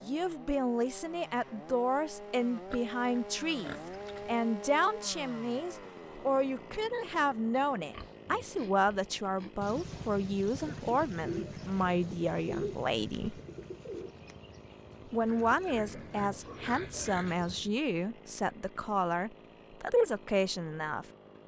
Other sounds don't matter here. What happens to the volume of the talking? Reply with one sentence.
The loudness of the talking stays about the same.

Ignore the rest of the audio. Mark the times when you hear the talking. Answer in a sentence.
You can hear the talking from 0.0 to 13.4 s and from 15.1 to 21.1 s.